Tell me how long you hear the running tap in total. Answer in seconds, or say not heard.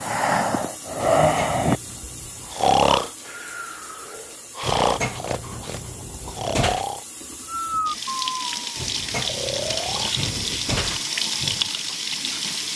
13 s.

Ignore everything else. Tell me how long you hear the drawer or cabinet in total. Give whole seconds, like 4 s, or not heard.
6 s.